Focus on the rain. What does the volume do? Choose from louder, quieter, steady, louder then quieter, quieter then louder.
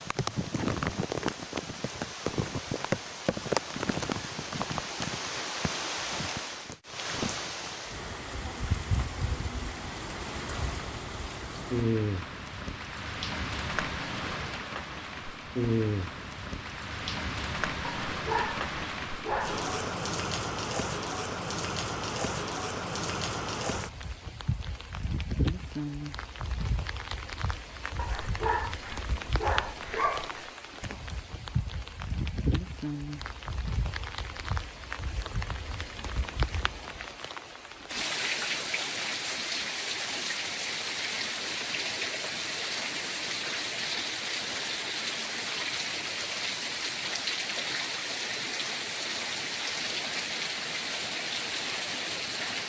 steady.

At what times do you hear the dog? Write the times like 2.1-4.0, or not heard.
17.9-19.6, 27.9-30.5.